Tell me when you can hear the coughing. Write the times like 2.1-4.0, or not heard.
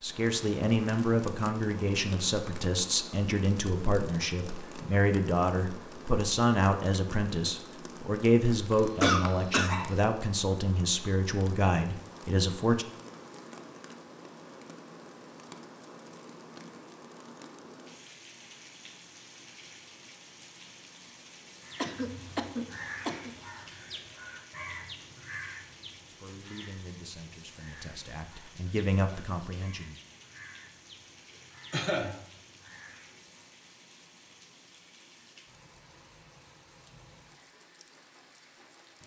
8.7-9.9, 21.8-23.3, 31.7-32.1.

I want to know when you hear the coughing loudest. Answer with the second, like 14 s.
9 s.